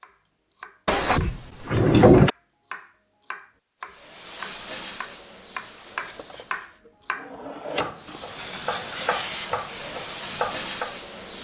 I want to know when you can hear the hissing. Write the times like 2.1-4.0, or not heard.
3.9-6.8, 7.9-11.3.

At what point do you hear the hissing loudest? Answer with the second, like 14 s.
9 s.